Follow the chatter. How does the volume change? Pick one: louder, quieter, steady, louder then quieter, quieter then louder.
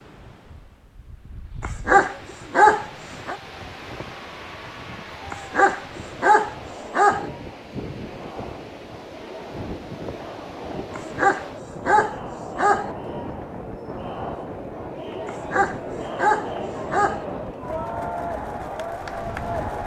louder.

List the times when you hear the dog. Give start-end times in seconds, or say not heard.
1.6-3.4, 5.3-7.2, 10.9-12.9, 15.2-17.2.